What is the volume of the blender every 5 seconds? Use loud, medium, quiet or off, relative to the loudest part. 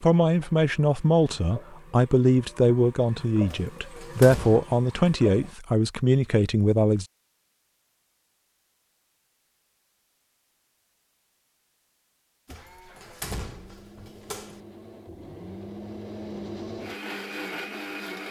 off, off, quiet, loud.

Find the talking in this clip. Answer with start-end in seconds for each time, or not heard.
0.0-7.0.